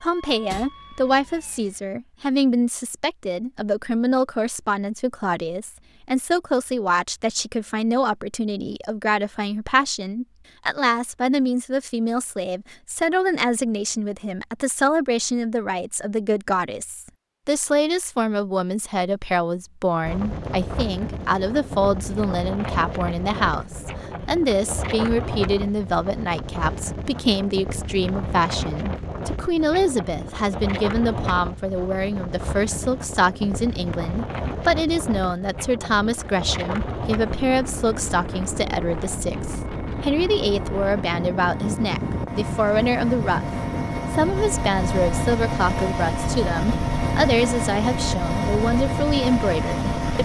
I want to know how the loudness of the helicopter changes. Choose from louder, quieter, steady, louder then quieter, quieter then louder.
louder.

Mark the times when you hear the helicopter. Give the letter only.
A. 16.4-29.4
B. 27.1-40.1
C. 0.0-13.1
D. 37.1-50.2
D.